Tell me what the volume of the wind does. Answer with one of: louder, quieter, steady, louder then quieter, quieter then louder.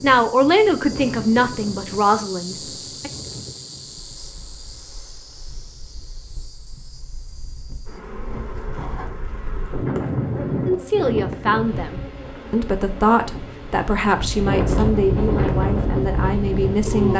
quieter then louder.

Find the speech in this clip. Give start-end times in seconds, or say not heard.
0.0-3.1, 10.7-17.1.